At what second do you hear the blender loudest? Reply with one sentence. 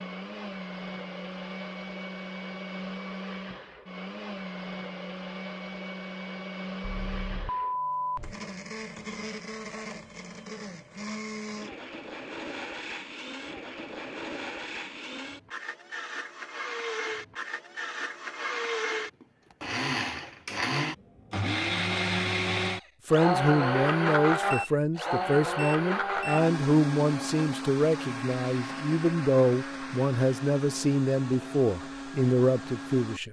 The volume of the blender peaks at 24 seconds.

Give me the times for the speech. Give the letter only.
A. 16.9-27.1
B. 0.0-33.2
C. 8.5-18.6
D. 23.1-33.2
D.